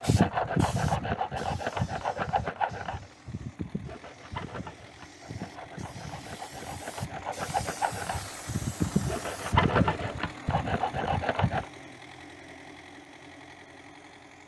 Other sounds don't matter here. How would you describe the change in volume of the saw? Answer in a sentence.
The volume of the saw goes down, then up.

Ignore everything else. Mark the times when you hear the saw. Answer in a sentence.
You can hear the saw from 0.0 to 11.7 s.